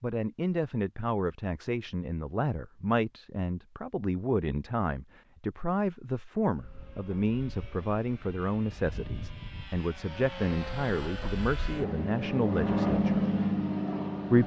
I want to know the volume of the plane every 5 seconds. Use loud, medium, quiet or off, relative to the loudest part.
off, quiet, loud.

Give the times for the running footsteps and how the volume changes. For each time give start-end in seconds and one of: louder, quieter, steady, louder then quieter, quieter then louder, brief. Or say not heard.
not heard.